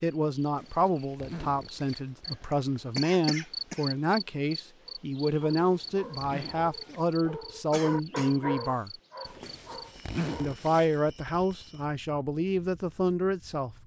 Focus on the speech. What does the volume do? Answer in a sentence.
The loudness of the speech stays about the same.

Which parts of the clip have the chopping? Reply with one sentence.
You can't hear the chopping here.